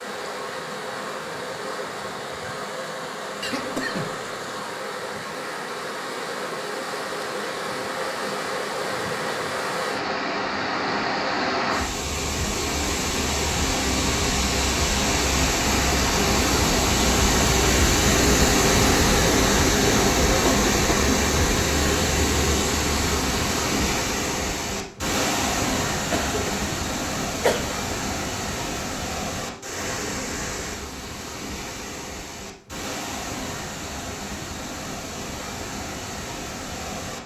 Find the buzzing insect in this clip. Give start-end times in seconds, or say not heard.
not heard.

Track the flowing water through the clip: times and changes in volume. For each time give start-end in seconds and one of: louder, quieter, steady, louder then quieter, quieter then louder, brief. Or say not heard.
0.0-37.2 louder then quieter.